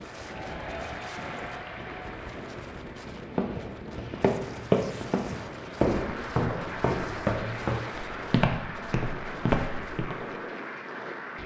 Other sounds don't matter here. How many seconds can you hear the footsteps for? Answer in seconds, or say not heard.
7 s.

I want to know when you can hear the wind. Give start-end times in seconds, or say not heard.
0.0-11.4.